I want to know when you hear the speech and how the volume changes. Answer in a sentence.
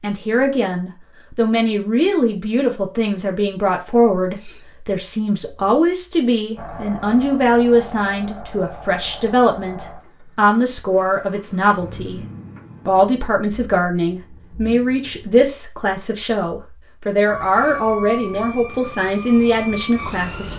You can hear the speech from 0.0 to 12.2 s, at a steady volume; and from 12.8 to 20.5 s, at a steady volume.